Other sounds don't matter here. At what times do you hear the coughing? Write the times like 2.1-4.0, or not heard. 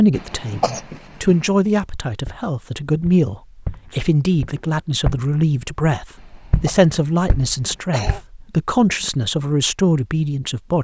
0.1-1.4, 6.2-8.2.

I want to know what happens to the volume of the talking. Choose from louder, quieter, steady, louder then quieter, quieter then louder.
steady.